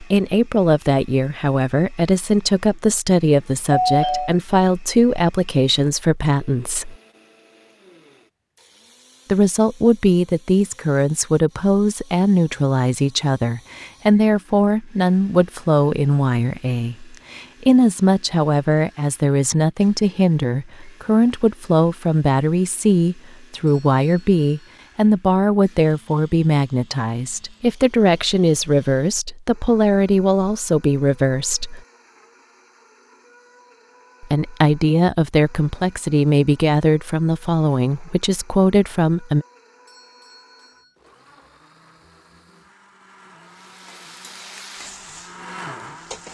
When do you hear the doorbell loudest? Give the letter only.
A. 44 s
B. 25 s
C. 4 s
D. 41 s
C.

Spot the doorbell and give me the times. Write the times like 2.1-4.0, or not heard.
3.7-4.3, 23.6-24.7, 39.9-40.9.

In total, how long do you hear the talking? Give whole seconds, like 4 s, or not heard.
35 s.